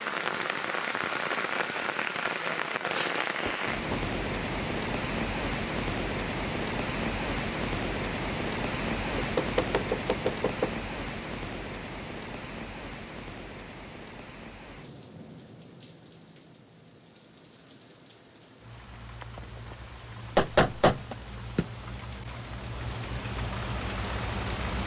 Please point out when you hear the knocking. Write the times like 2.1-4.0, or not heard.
3.5-4.0, 9.2-10.7, 20.4-21.1.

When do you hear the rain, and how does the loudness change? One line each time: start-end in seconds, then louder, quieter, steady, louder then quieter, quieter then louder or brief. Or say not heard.
0.0-24.8 quieter then louder.